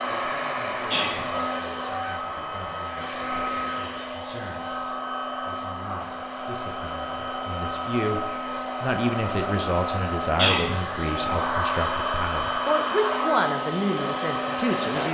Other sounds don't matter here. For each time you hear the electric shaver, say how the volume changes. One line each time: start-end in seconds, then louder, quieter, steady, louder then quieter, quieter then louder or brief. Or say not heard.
not heard.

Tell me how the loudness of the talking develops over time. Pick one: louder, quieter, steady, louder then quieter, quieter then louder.
louder.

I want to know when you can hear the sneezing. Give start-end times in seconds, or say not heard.
0.9-1.3, 10.3-10.8.